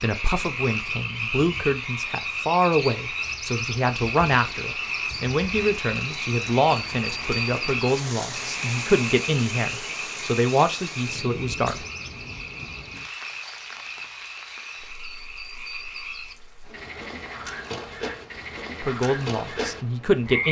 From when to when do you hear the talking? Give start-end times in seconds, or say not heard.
0.0-11.8, 18.8-20.4.